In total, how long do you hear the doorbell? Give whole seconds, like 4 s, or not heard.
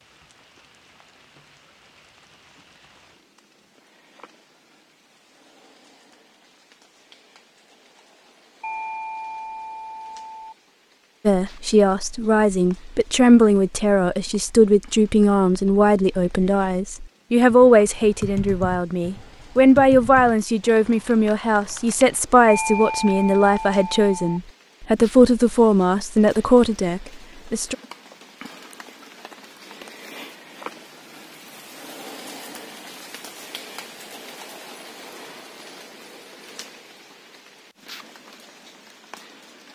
4 s.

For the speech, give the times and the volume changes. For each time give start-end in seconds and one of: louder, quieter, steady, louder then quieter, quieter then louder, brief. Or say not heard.
11.2-27.8 steady.